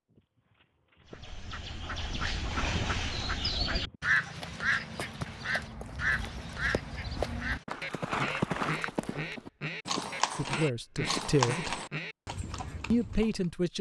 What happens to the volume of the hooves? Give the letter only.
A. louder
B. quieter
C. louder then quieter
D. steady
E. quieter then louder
A.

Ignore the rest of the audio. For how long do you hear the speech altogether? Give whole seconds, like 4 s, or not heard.
2 s.